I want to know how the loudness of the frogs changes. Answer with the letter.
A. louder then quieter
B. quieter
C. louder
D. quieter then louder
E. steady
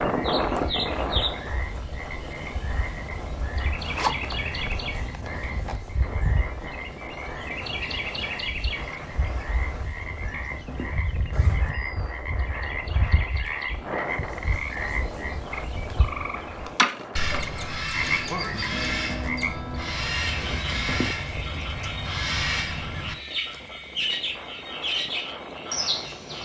A.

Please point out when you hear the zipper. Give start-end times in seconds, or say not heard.
3.8-5.8, 10.0-11.7, 20.2-21.6.